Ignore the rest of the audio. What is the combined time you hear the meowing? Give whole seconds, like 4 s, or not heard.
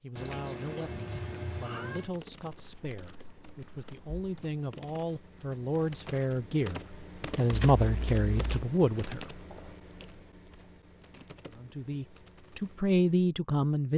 2 s.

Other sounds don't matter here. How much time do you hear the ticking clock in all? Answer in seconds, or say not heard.
not heard.